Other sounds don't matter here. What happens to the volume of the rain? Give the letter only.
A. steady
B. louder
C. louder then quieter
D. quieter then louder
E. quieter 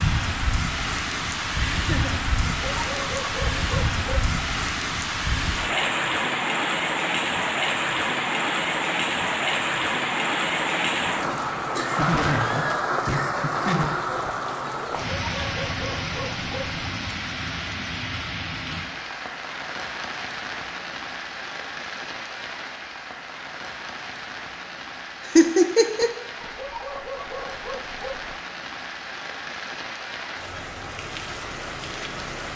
E.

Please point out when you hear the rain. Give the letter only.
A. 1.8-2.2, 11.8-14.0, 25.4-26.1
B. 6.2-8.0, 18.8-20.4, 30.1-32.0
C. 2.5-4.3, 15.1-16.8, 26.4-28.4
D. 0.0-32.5
D.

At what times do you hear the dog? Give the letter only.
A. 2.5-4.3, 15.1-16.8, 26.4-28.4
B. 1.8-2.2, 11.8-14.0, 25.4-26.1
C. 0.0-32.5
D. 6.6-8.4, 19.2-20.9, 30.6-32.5
A.